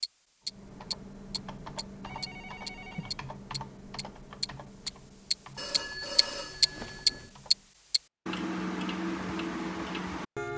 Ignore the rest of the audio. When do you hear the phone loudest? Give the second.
6 s.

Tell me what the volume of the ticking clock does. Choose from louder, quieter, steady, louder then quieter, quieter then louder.
louder then quieter.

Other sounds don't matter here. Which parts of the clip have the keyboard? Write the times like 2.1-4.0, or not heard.
0.5-7.8.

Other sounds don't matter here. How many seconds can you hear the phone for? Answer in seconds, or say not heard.
3 s.